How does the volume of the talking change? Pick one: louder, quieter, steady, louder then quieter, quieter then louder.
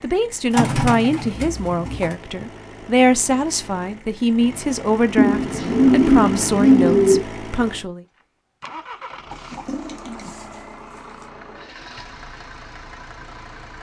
steady.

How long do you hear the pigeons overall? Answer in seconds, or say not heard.
6 s.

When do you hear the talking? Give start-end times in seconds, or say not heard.
0.0-8.1.